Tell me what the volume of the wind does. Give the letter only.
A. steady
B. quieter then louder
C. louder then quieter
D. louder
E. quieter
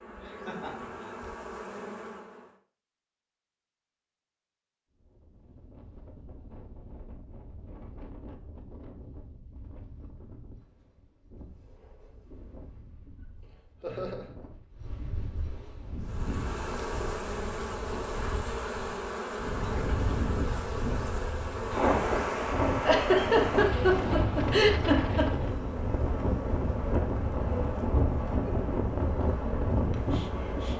D.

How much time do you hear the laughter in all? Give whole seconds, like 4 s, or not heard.
4 s.